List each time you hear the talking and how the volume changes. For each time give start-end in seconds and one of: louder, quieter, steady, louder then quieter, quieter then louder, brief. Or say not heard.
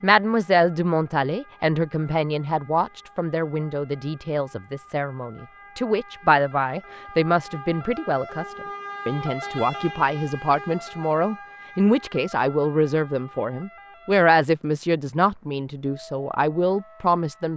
0.0-17.5 steady.